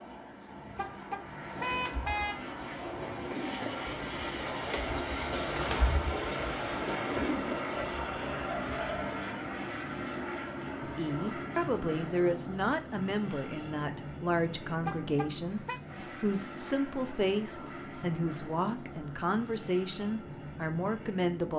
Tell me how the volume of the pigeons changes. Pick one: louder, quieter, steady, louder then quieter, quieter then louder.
louder.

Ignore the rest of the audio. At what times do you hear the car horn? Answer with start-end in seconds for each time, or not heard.
0.8-2.5, 14.8-15.8.